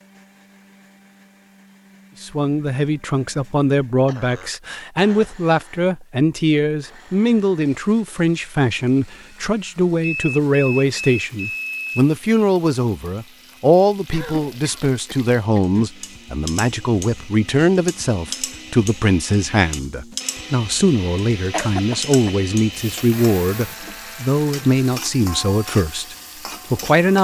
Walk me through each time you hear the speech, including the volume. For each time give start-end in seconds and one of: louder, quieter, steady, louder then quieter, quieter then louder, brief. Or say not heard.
2.2-27.2 steady.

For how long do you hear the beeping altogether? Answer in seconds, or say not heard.
2 s.